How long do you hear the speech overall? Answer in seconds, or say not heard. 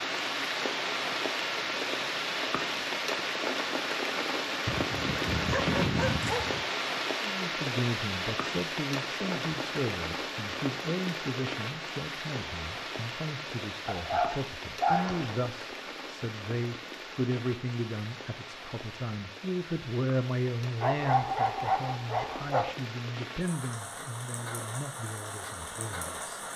19 s.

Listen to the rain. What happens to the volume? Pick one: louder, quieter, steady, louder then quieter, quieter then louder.
quieter.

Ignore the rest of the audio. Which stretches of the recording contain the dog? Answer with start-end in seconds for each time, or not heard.
4.7-6.7, 13.8-15.4, 20.8-22.8.